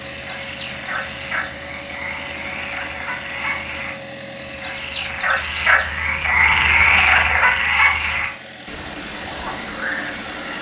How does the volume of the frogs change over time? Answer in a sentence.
The volume of the frogs goes up, then down.